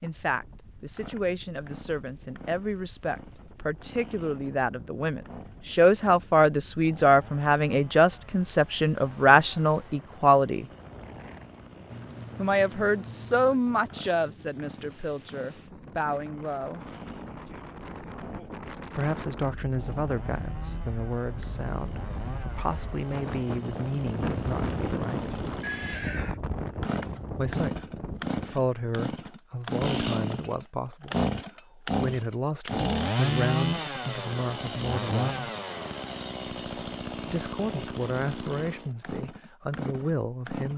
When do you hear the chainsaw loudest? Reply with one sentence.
The loudest moment of the chainsaw is at 33 seconds.